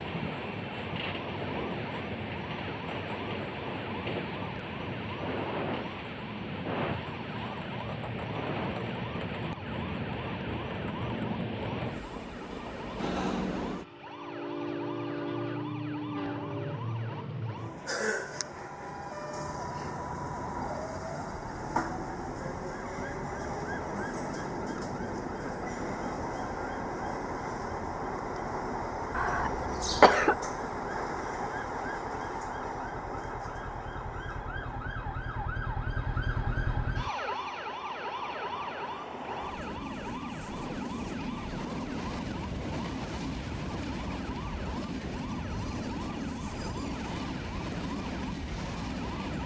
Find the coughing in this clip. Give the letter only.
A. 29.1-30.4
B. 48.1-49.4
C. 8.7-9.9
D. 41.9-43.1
A.